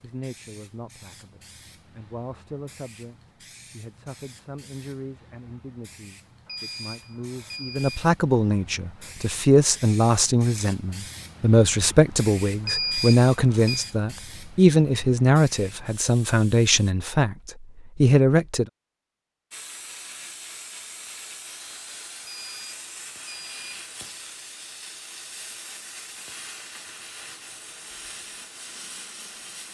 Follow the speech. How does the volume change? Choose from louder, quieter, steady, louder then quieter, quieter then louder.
louder.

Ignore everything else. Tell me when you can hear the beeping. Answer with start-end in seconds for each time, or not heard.
6.5-8.1, 12.7-13.9, 22.2-23.8.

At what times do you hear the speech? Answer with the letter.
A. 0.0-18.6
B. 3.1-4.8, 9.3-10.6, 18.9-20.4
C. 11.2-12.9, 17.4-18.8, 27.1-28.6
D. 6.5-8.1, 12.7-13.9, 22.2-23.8
A.